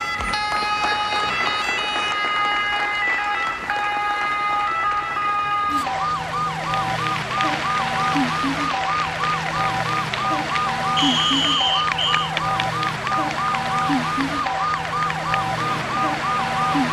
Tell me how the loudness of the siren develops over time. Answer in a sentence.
The volume of the siren stays about the same.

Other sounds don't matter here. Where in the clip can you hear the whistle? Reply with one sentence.
The whistle can be heard from 10.9 to 12.3 s.